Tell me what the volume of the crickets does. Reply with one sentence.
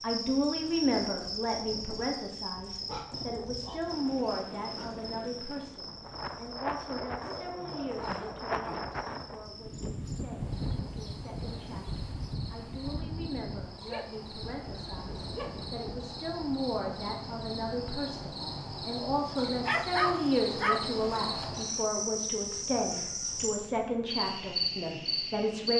The loudness of the crickets goes down, then up.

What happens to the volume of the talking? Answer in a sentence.
The loudness of the talking goes down, then up.